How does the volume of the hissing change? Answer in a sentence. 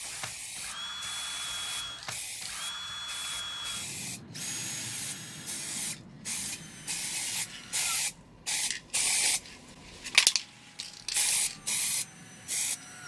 The volume of the hissing goes up.